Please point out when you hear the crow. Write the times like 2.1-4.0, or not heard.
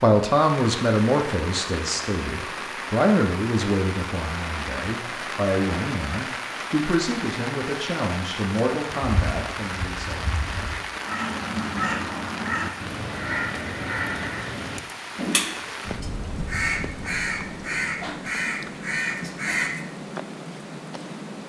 9.0-19.9.